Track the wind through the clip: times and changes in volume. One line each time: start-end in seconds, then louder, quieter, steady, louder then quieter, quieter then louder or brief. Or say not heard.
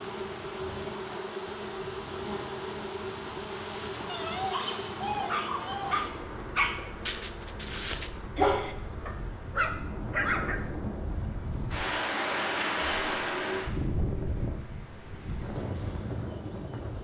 0.0-16.9 louder.